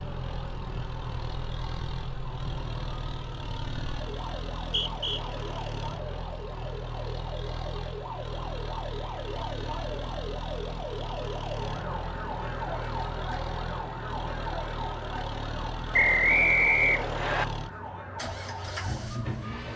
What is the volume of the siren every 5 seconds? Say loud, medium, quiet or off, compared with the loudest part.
medium, loud, loud, loud.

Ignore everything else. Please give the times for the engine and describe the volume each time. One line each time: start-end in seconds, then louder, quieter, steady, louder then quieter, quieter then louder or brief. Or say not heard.
0.0-19.7 steady.